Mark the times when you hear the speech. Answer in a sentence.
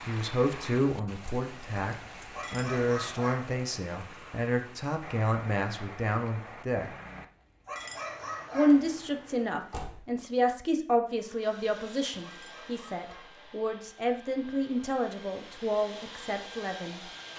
You can hear the speech from 0.1 to 6.9 s and from 8.5 to 17.0 s.